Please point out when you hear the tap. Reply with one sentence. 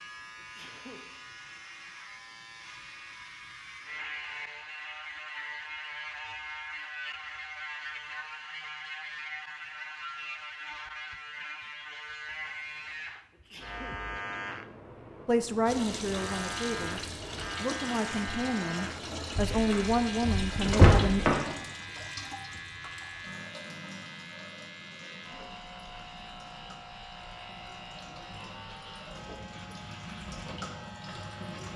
The tap can be heard from 15.7 to 31.7 s.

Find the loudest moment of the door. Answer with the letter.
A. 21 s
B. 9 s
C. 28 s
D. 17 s
A.